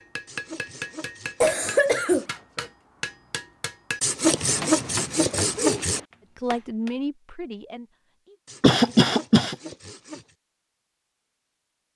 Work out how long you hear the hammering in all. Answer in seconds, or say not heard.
7 s.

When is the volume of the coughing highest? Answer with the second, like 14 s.
9 s.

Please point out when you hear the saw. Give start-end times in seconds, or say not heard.
0.2-2.3, 4.0-6.0, 8.4-10.3.